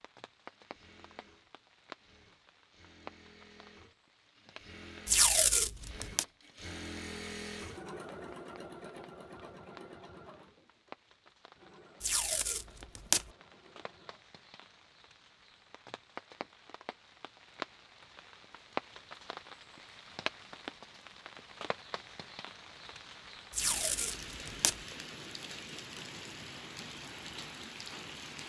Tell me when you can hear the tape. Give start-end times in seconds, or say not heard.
5.0-6.2, 12.0-13.2, 23.5-24.8.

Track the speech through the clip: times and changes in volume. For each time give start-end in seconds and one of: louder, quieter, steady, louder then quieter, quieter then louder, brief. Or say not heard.
not heard.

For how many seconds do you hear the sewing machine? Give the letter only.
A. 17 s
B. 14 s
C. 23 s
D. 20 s
B.